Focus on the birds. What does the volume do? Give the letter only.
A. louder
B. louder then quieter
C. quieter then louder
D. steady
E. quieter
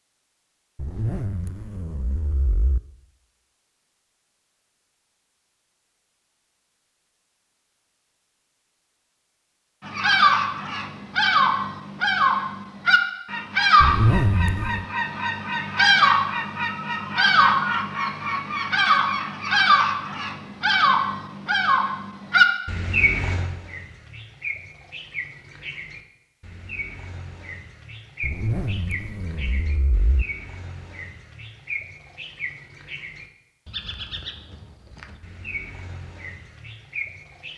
E.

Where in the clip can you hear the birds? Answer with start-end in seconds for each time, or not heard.
9.8-37.5.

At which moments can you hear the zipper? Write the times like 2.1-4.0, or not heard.
0.8-2.8, 13.8-14.8, 28.2-30.2.